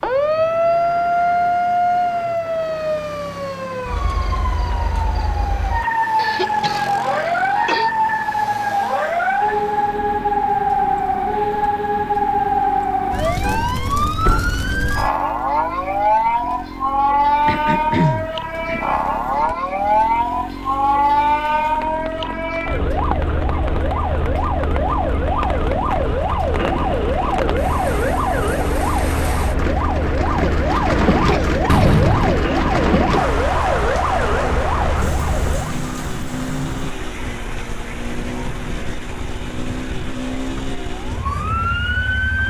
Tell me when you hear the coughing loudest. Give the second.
18 s.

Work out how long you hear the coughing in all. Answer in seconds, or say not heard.
4 s.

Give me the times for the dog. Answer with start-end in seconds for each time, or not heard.
not heard.